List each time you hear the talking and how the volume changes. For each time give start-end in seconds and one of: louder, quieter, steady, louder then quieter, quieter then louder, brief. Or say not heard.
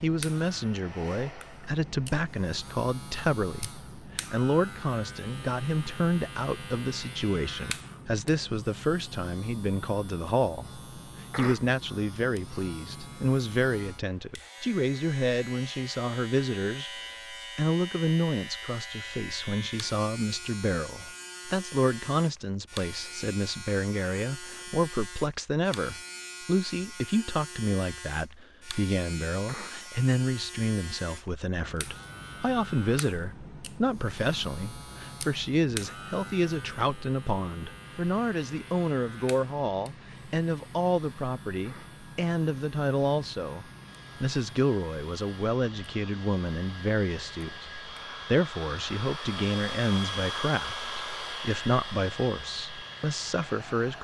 0.0-53.9 steady.